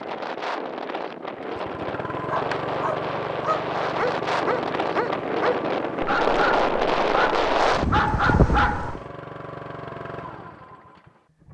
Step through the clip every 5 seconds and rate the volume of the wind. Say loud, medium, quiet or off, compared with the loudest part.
medium, loud, off.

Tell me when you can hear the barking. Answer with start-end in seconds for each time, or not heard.
2.2-8.9.